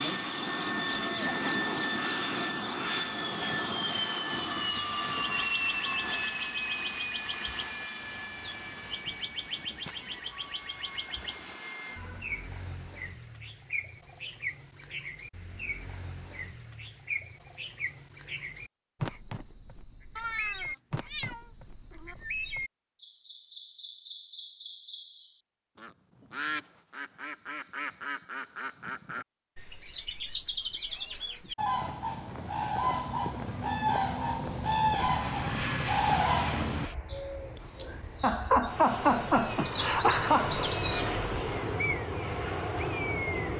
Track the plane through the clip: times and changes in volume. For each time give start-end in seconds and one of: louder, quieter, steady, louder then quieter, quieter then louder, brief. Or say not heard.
0.0-12.5 quieter
35.0-43.5 quieter then louder.